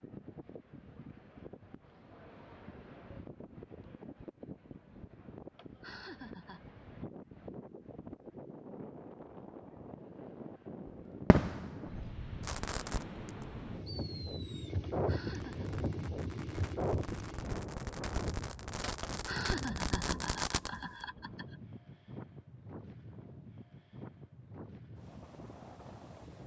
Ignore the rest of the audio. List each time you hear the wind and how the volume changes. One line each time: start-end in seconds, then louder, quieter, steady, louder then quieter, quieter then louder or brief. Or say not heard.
0.0-26.4 louder then quieter.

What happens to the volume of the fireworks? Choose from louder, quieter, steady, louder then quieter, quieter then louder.
quieter then louder.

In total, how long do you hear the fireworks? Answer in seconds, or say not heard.
10 s.